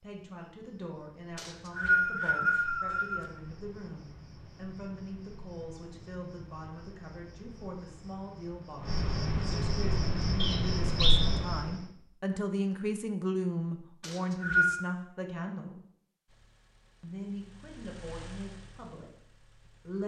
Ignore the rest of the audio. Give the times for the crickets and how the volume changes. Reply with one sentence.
The crickets can be heard from 0.2 to 11.8 s, getting louder.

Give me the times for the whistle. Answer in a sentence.
You can hear the whistle from 1.4 to 3.2 s, from 10.4 to 11.3 s and from 14.0 to 14.8 s.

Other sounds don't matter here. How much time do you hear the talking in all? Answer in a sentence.
The talking can be heard for 19 seconds in total.